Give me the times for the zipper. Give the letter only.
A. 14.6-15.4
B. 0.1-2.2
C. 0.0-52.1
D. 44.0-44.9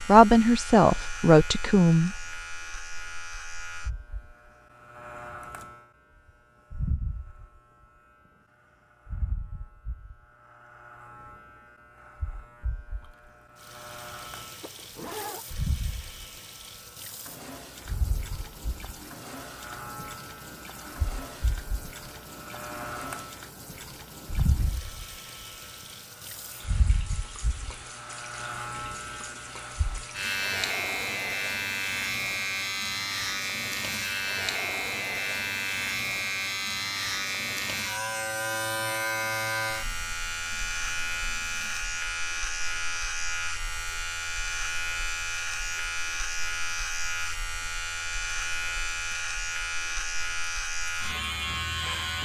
A.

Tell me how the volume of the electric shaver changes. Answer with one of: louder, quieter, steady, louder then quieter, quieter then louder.
louder.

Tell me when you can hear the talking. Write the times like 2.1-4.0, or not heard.
0.1-2.2.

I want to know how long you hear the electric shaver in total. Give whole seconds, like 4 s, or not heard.
52 s.